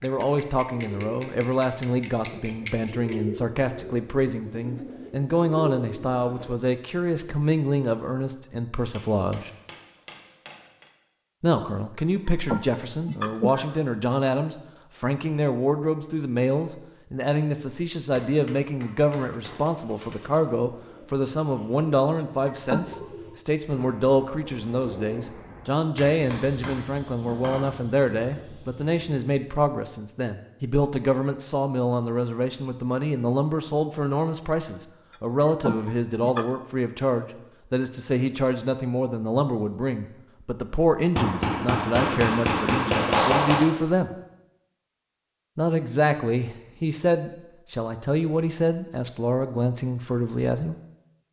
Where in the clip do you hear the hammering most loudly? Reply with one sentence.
The loudest moment of the hammering is at 43 seconds.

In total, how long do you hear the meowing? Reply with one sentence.
The meowing can be heard for 4 seconds in total.